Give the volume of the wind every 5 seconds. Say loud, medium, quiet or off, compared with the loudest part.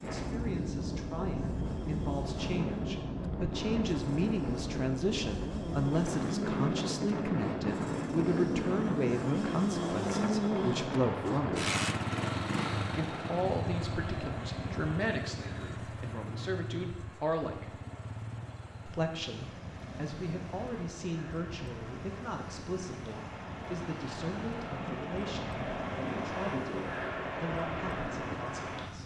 loud, loud, loud, quiet, medium, loud.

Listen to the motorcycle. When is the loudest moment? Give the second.
10 s.